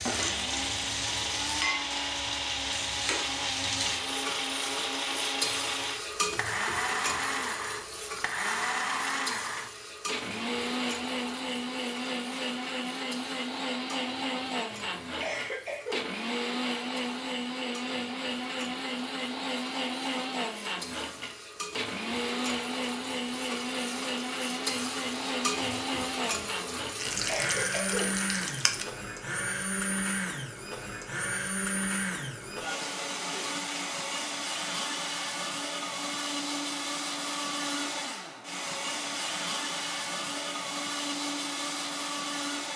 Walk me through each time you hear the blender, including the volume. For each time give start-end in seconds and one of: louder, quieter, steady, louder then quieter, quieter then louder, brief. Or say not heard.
0.0-42.7 steady.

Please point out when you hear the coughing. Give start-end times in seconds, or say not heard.
14.7-16.1, 26.8-28.1.